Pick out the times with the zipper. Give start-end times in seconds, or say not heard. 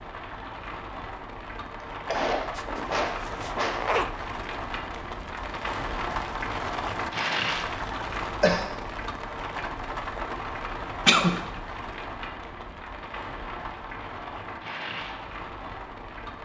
2.5-4.1.